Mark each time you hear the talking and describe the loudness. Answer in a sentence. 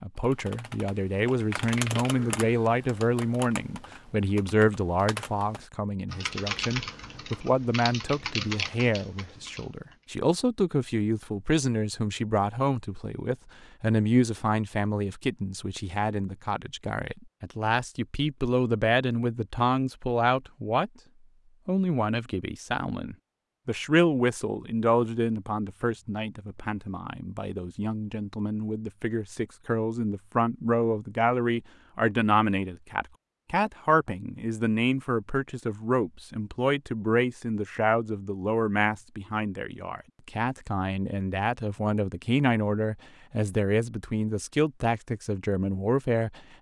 You can hear the talking from 0.0 to 20.9 s, at a steady volume; and from 21.6 to 46.4 s, at a steady volume.